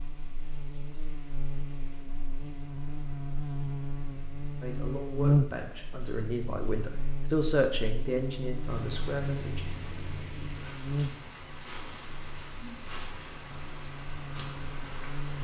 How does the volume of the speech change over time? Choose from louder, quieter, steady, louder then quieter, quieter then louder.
louder then quieter.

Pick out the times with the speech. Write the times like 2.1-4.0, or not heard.
4.6-9.7.